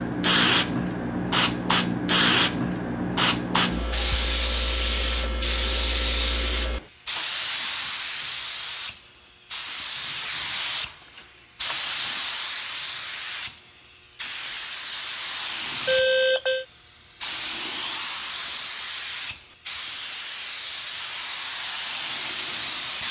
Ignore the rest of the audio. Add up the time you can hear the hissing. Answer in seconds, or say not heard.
23 s.